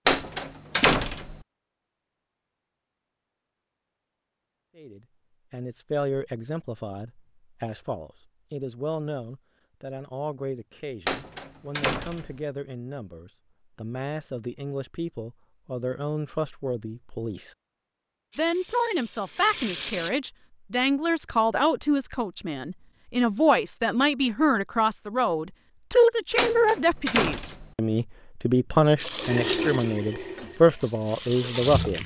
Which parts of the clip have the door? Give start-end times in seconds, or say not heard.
0.1-1.4, 11.1-12.4, 26.4-27.7.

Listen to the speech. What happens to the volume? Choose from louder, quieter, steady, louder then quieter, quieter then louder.
louder.